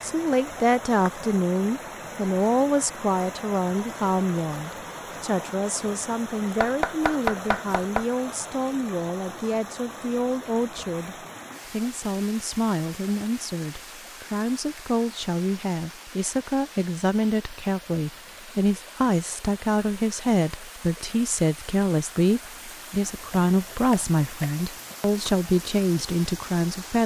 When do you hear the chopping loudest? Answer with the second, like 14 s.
7 s.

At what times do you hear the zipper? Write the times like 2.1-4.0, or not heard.
not heard.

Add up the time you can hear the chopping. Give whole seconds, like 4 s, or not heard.
3 s.